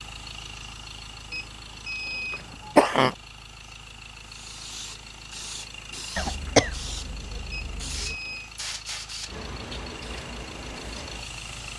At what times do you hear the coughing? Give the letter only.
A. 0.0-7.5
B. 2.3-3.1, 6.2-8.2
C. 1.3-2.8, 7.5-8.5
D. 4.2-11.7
B.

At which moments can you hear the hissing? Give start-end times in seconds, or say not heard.
4.2-11.7.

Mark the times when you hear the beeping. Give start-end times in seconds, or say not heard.
1.3-2.8, 7.5-8.5.